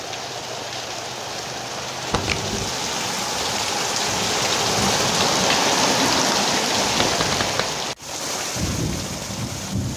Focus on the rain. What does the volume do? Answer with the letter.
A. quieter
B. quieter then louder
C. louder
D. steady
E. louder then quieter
E.